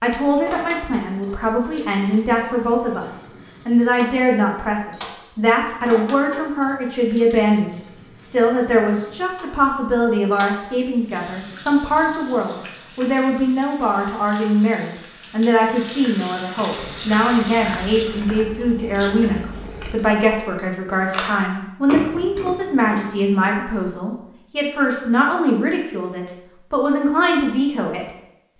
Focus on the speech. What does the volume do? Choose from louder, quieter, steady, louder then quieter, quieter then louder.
steady.